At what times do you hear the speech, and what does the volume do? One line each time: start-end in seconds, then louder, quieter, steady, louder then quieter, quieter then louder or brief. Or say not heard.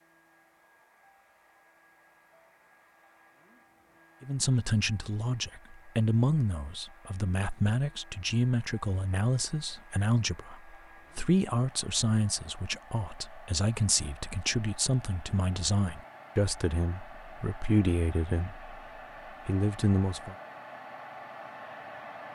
4.2-18.7 steady
19.4-20.4 brief.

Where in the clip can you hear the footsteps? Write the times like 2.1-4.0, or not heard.
not heard.